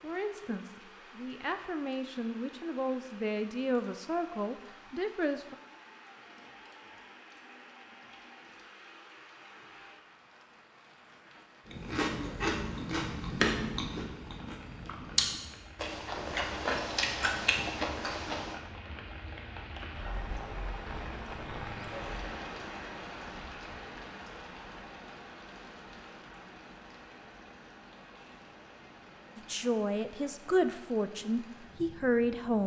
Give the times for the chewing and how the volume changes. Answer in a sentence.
The chewing can be heard from 11.7 to 18.6 s, at a steady volume.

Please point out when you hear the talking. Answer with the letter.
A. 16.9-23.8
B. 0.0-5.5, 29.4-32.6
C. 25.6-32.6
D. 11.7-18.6
B.